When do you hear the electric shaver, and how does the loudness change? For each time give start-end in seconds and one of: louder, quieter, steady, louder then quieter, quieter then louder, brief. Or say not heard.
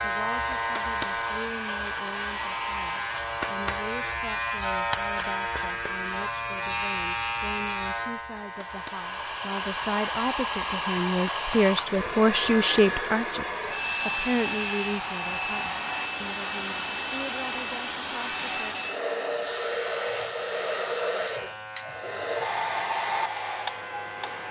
0.0-24.4 quieter.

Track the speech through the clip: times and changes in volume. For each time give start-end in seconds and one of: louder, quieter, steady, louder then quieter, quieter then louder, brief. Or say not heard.
0.0-18.8 louder then quieter.